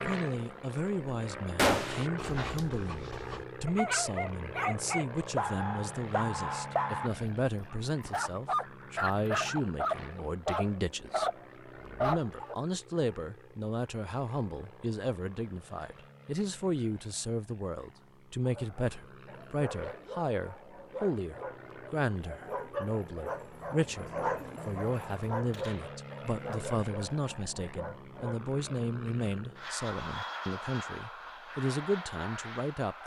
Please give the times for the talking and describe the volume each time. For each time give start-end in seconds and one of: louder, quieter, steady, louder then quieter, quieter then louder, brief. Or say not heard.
0.1-11.3 steady
12.0-33.0 steady.